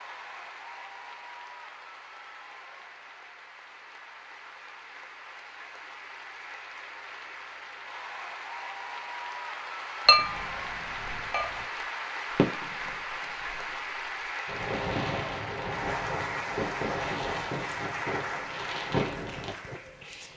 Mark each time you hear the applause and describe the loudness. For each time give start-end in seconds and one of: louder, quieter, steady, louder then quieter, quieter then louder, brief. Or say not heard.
0.0-20.3 louder.